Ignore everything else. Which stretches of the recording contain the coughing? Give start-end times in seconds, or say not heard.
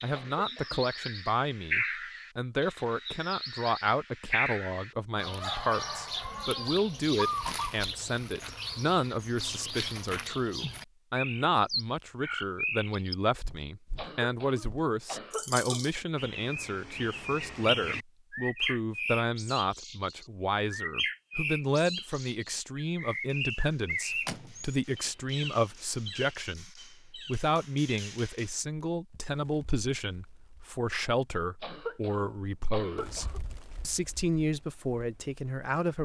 0.1-0.8, 13.9-15.9, 31.6-33.4.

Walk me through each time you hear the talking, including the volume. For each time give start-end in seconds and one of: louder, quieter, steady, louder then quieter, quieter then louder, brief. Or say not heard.
0.0-36.0 steady.